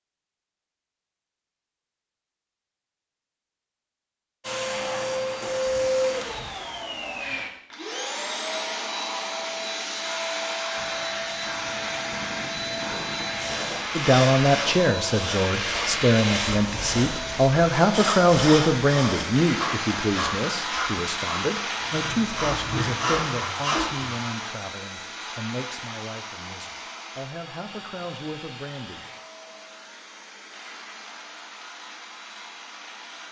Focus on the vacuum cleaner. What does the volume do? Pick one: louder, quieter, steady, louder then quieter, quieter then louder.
quieter.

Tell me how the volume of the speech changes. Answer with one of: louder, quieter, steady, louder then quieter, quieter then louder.
quieter.